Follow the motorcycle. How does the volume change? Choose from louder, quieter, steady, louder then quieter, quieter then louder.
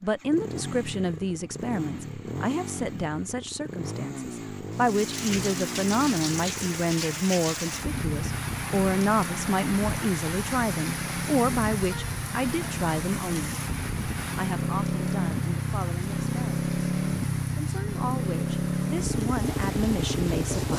louder.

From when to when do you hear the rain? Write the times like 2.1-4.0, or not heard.
4.7-20.7.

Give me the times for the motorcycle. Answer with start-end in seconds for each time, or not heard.
0.0-20.7.